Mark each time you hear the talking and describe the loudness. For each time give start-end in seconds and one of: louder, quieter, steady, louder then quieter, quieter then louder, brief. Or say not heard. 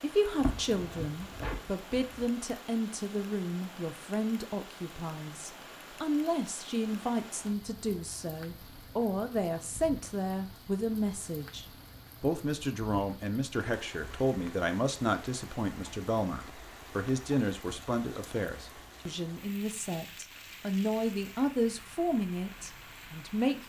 0.0-23.6 steady.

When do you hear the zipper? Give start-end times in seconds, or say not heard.
0.3-2.3.